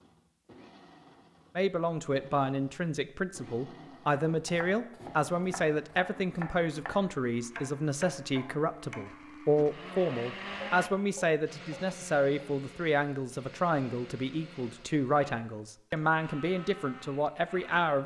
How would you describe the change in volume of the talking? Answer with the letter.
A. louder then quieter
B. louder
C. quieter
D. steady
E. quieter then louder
D.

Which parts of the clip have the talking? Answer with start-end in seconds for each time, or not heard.
1.6-18.0.